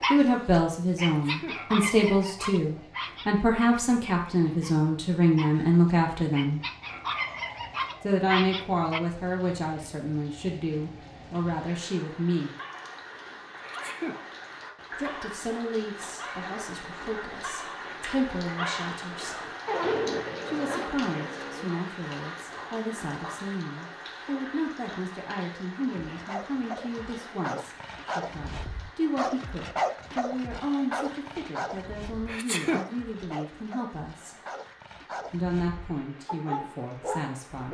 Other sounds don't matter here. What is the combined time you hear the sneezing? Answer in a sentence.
You can hear the sneezing for 2 seconds altogether.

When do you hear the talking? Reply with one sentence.
The talking can be heard from 0.1 to 6.6 s, from 8.0 to 12.5 s, from 14.9 to 19.4 s, from 20.4 to 34.4 s and from 35.1 to 37.6 s.